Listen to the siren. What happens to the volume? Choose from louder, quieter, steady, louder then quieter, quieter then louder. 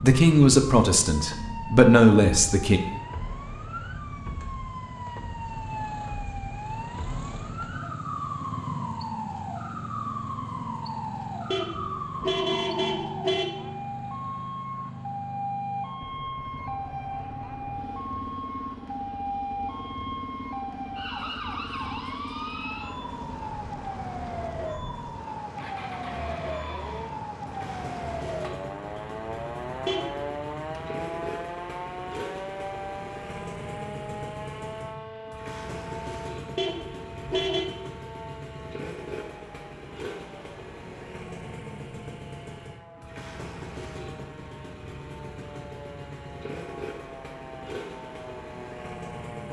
quieter.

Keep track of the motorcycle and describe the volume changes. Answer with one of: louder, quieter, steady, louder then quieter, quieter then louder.
steady.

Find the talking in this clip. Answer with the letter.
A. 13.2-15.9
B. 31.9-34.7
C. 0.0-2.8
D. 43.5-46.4
C.